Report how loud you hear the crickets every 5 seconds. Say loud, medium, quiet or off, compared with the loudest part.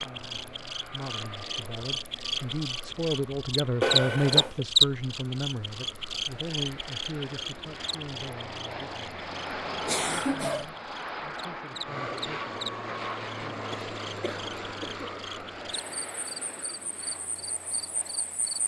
loud, medium, quiet, quiet.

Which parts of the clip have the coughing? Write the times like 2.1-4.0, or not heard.
3.8-4.7, 9.8-10.7, 13.7-15.2.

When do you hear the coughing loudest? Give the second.
4 s.